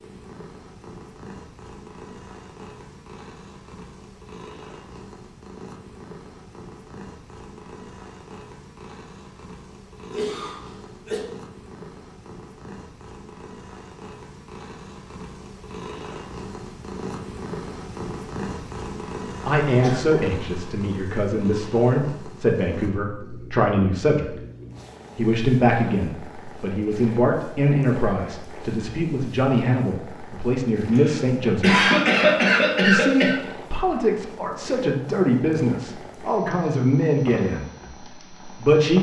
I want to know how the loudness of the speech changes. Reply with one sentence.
The volume of the speech stays about the same.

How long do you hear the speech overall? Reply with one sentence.
The speech can be heard for 18 seconds in total.